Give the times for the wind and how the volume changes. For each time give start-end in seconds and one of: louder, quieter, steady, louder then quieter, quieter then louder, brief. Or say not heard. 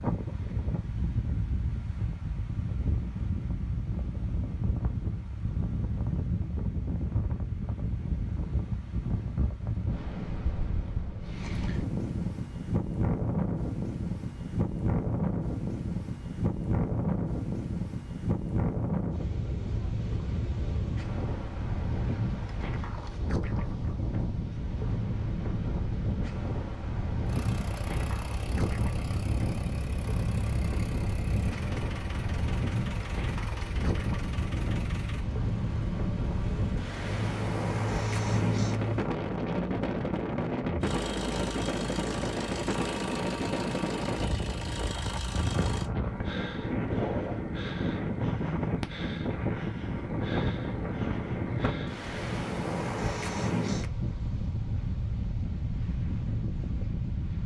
0.0-57.4 steady.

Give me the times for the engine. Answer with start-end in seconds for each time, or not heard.
27.2-45.9.